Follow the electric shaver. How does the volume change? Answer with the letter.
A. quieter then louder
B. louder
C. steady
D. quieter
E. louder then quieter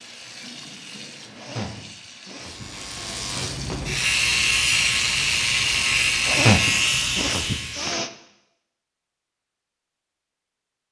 B.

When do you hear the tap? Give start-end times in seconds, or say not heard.
0.0-4.0.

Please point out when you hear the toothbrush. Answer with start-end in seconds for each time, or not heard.
not heard.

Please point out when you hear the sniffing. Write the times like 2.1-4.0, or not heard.
1.4-3.6, 6.2-8.1.